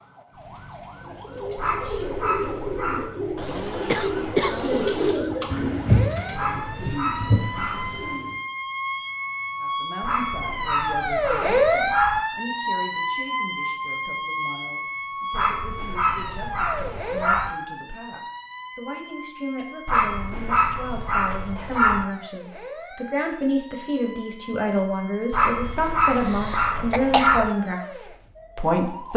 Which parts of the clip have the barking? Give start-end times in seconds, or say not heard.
1.6-3.1, 6.3-8.2, 10.0-12.2, 15.3-17.5, 19.9-22.1, 25.3-27.5.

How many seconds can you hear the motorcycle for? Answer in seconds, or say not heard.
not heard.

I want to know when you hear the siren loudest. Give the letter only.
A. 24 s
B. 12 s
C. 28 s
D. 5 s
B.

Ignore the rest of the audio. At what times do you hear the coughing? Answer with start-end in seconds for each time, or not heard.
3.4-5.2, 26.2-27.4.